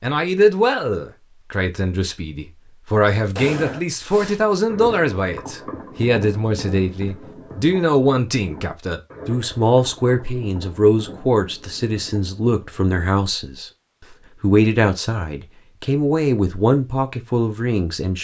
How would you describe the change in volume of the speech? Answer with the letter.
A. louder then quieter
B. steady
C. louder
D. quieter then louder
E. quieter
B.